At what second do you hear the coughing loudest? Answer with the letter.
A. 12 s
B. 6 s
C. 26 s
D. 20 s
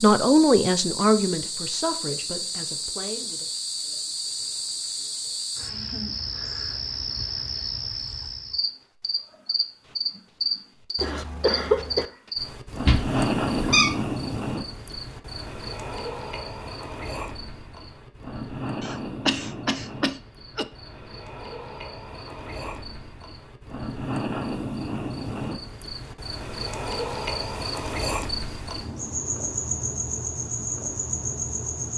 A.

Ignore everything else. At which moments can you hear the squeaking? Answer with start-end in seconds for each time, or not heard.
12.8-13.9.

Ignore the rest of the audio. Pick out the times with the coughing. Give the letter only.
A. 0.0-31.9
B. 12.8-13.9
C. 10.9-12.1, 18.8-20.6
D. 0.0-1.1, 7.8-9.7
C.